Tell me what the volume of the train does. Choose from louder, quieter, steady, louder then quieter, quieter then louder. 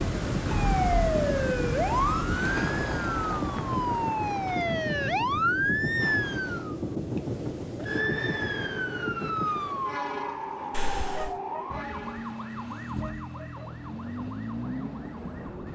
quieter.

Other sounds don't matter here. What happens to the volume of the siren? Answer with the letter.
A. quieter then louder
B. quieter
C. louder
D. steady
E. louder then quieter
B.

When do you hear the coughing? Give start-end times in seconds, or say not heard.
10.7-11.4.